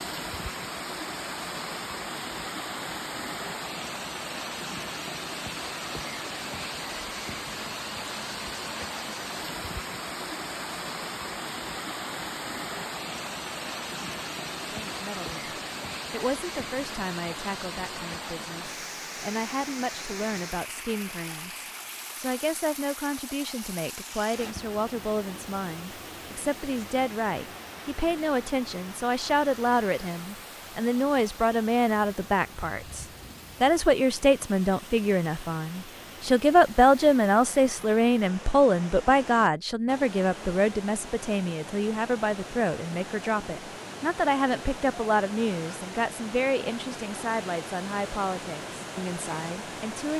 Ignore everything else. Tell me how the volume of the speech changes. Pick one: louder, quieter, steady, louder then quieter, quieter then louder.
louder then quieter.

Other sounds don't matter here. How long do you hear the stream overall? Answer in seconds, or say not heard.
50 s.